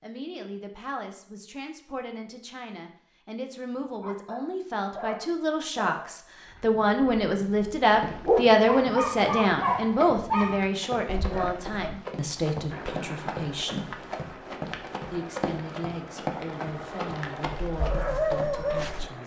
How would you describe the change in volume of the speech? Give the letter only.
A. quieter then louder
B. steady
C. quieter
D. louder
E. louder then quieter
E.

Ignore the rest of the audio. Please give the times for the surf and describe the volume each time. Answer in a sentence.
You can't hear the surf here.